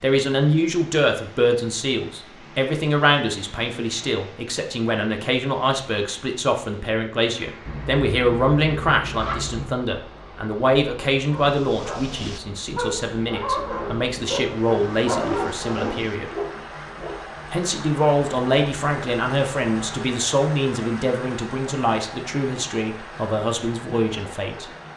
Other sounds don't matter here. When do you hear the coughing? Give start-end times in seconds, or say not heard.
not heard.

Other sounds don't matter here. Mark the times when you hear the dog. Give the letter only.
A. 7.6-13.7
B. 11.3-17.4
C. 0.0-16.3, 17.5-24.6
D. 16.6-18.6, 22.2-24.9
B.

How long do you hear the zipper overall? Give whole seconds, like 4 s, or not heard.
5 s.